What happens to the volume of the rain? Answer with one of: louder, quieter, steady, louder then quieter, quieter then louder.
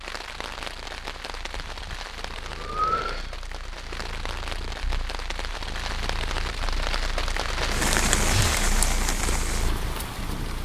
louder.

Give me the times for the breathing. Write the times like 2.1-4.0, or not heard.
1.5-3.3, 8.2-8.7.